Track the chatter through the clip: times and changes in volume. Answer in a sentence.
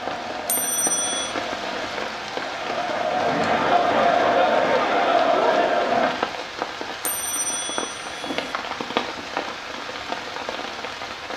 The chatter can be heard from 0.0 to 6.2 s, getting louder.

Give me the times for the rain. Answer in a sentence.
The rain can be heard from 0.0 to 11.3 s.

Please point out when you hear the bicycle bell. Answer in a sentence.
You can hear the bicycle bell from 0.5 to 1.4 s and from 7.0 to 8.6 s.